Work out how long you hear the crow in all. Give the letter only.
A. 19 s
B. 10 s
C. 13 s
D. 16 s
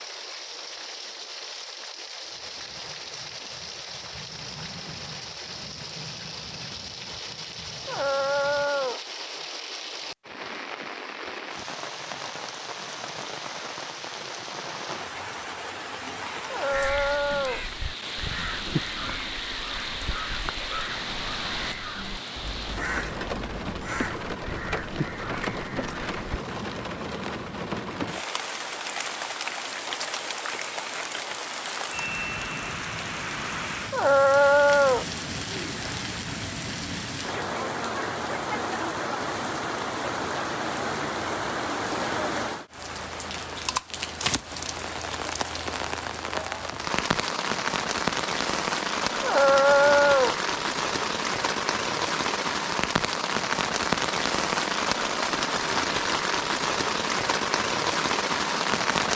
B.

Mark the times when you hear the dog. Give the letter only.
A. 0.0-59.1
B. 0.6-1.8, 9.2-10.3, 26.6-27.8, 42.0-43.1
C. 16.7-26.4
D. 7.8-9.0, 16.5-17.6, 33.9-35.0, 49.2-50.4
D.